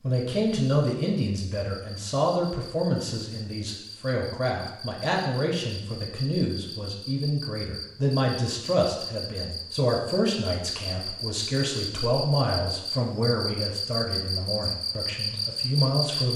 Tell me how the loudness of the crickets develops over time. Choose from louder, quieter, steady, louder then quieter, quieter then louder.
louder.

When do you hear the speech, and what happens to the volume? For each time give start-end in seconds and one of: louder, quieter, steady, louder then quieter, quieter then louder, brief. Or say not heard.
0.0-16.3 steady.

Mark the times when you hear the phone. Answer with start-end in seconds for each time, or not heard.
not heard.